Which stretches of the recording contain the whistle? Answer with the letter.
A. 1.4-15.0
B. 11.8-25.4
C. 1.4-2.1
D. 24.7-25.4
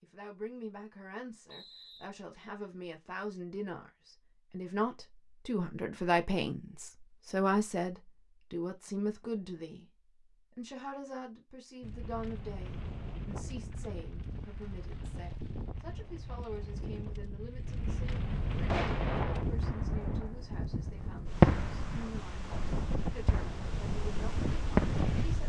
C.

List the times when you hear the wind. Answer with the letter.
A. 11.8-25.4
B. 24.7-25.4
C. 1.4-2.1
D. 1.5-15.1
A.